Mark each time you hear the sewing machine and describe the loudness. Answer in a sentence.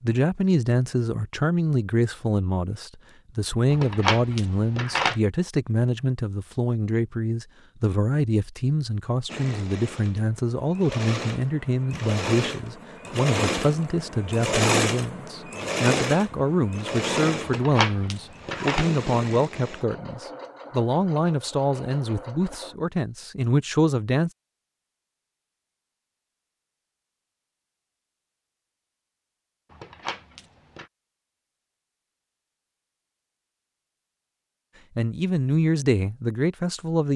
The sewing machine can be heard from 9.2 to 22.8 s, getting louder then quieter.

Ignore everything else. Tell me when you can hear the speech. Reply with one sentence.
You can hear the speech from 0.0 to 24.3 s and from 35.0 to 37.1 s.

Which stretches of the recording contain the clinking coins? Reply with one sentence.
You can hear the clinking coins from 3.7 to 5.2 s, from 17.4 to 18.9 s and from 29.7 to 30.9 s.